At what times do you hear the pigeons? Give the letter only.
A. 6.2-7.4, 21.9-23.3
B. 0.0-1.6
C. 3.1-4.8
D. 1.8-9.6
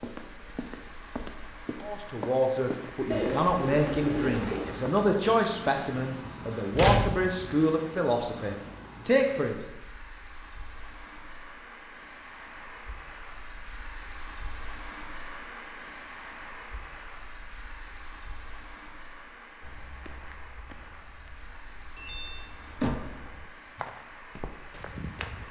C.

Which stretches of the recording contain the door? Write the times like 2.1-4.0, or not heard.
6.2-7.4, 21.9-23.3.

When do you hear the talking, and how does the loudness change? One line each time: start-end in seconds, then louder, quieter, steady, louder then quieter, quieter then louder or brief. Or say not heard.
1.8-9.6 steady.